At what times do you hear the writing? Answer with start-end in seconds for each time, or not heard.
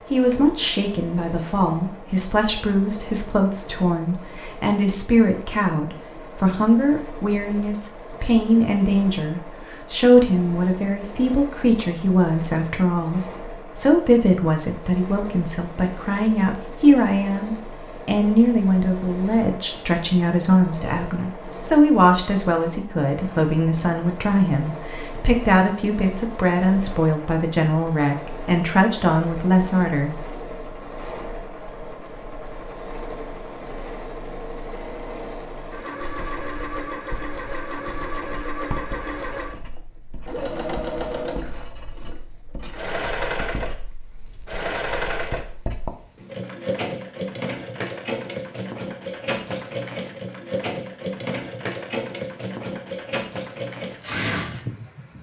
36.0-45.9.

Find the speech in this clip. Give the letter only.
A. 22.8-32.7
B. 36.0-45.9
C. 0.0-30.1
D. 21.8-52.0
C.